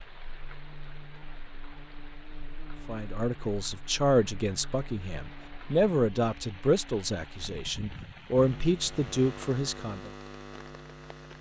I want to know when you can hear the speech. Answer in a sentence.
The speech can be heard from 2.9 to 10.1 s.